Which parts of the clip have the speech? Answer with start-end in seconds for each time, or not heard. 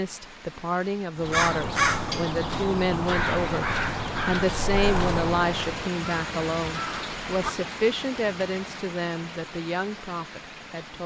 0.0-11.0.